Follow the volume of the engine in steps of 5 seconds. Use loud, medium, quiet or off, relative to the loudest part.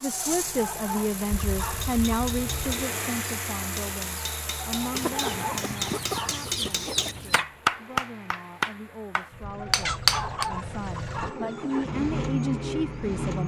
loud, medium, loud.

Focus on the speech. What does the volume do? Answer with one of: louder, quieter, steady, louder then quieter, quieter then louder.
quieter then louder.